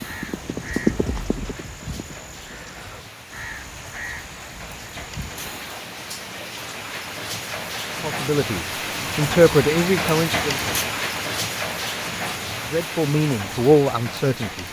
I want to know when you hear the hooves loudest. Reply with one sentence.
The loudest moment of the hooves is at 1 second.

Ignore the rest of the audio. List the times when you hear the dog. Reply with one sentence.
The dog can't be heard in this clip.